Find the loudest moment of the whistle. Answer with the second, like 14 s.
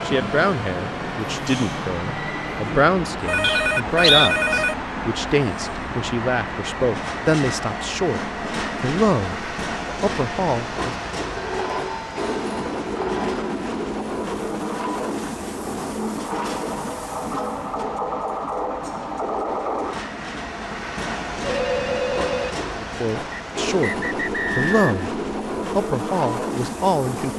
4 s.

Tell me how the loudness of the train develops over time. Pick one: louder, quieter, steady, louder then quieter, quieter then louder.
steady.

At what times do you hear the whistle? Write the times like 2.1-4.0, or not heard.
3.4-4.3, 23.3-25.1.